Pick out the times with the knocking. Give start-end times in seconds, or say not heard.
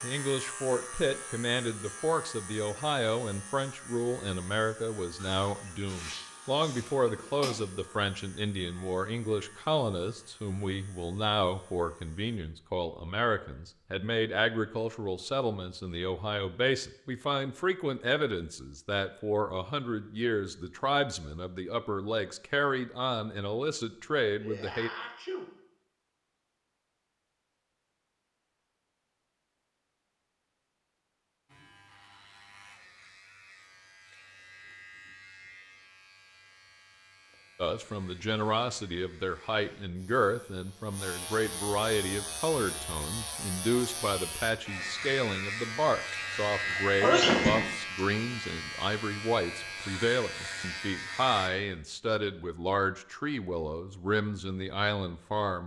not heard.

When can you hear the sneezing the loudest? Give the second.
47 s.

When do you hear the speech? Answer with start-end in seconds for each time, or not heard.
0.0-24.9, 37.5-55.6.